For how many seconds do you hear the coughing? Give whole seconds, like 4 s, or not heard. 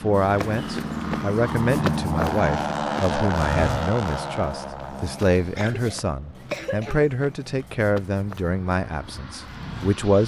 2 s.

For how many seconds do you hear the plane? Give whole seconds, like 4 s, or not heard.
10 s.